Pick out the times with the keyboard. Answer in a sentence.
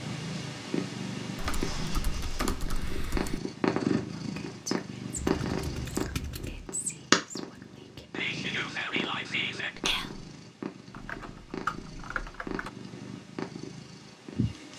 The keyboard can be heard from 1.4 to 3.4 s, from 5.2 to 6.7 s and from 10.9 to 12.7 s.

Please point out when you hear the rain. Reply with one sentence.
You can't hear the rain here.